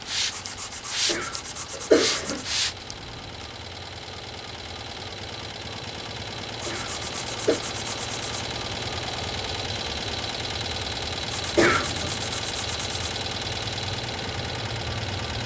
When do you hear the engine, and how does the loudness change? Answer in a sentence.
You can hear the engine from 0.0 to 15.4 s, getting louder.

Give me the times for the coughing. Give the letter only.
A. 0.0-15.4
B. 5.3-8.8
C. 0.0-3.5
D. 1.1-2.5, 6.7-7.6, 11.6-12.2
D.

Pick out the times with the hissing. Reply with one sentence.
The hissing can be heard from 0.0 to 3.5 s.